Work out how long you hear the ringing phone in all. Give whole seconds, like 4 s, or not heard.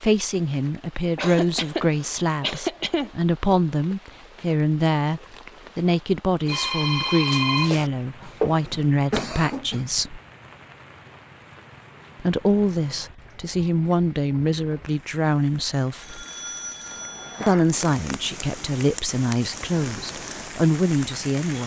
3 s.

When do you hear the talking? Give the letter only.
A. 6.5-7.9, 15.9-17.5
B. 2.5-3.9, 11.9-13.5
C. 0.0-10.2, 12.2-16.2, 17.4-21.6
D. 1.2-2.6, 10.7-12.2
C.